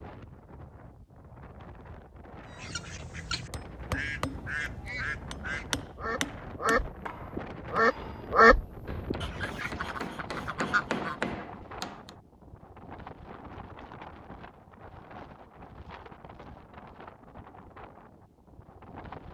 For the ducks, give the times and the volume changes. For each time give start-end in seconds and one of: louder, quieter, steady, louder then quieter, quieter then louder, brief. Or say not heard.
2.5-11.3 louder then quieter.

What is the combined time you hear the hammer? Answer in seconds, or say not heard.
9 s.